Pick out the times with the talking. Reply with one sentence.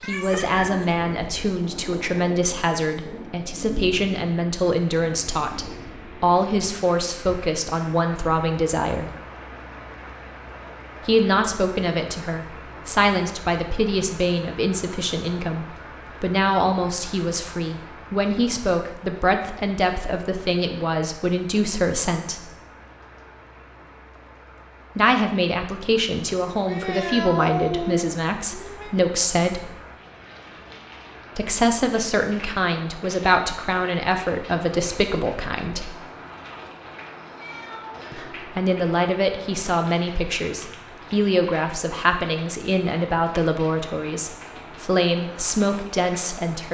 You can hear the talking from 0.0 to 9.1 s, from 11.1 to 22.4 s, from 24.9 to 29.7 s, from 31.4 to 35.9 s and from 38.1 to 46.6 s.